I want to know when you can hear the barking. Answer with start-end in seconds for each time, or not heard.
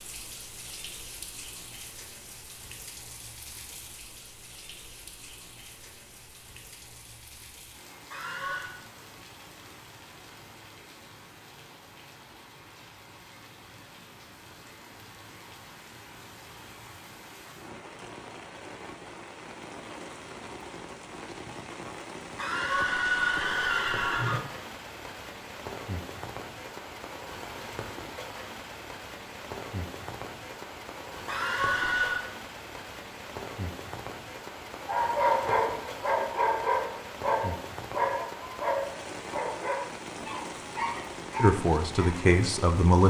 34.9-42.2.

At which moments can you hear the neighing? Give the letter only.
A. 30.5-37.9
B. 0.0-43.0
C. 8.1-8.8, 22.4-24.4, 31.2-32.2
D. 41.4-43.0
C.